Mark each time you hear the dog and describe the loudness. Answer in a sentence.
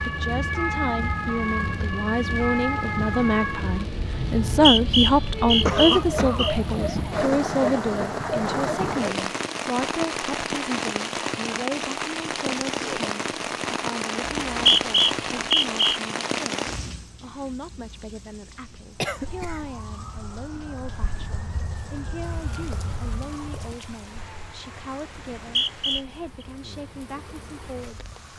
The dog can't be heard in this clip.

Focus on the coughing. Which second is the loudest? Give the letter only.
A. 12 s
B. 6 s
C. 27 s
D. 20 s
B.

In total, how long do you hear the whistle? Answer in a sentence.
The whistle can be heard for 5 seconds in total.